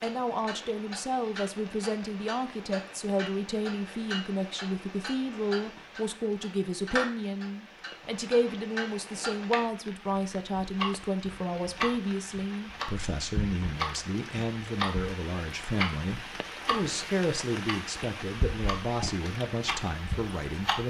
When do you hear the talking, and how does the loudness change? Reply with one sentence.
You can hear the talking from 0.0 to 20.8 s, at a steady volume.